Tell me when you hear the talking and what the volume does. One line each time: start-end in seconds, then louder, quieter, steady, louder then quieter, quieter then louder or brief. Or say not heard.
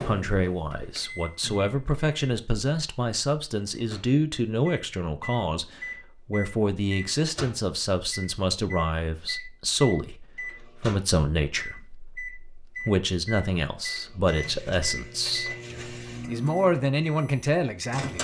0.1-18.1 steady.